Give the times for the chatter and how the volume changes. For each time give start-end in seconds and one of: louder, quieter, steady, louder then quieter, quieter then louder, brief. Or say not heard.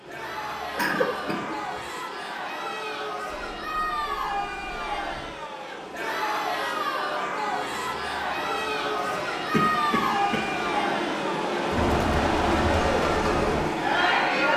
0.1-14.5 louder.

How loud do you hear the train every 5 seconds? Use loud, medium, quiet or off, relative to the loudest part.
quiet, medium, loud.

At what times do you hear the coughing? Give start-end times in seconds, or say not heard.
0.8-2.0, 9.3-10.4.